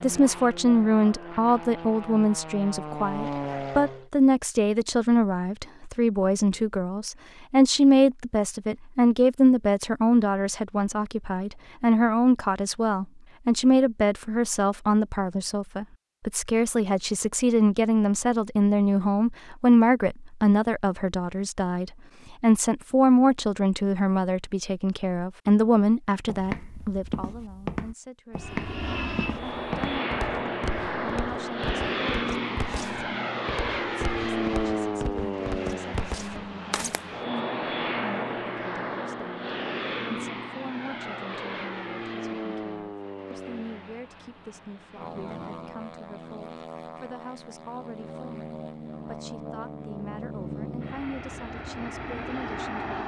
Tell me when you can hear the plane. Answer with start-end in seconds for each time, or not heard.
0.0-4.0, 28.4-53.0.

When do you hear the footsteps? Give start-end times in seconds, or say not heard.
26.2-37.0.